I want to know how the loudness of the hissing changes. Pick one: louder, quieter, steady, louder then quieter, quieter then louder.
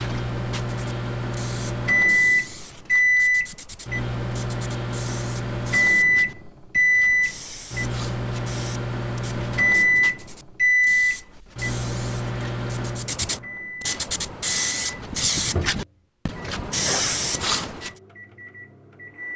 louder.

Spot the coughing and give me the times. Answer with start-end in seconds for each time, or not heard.
16.8-17.2.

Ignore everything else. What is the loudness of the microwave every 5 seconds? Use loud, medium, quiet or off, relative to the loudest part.
loud, loud, loud, quiet.